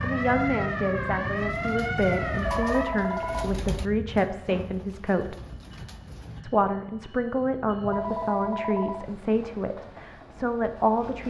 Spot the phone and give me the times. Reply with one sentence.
The phone can be heard from 2.4 to 3.5 s and from 7.8 to 9.1 s.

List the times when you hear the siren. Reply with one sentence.
You can hear the siren from 0.0 to 3.5 s.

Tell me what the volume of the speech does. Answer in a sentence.
The loudness of the speech stays about the same.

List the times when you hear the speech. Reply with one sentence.
The speech can be heard from 0.0 to 5.3 s and from 6.4 to 11.2 s.